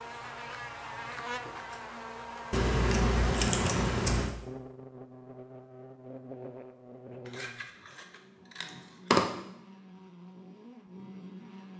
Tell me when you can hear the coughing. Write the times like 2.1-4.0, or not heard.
not heard.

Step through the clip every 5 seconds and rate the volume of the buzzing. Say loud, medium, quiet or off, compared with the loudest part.
loud, medium, medium.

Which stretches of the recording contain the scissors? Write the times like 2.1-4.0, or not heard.
2.5-4.3, 7.2-9.2.